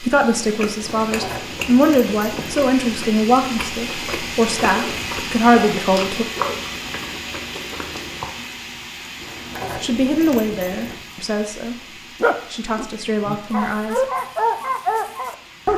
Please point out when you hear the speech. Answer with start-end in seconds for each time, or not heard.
0.0-6.2, 9.8-14.1.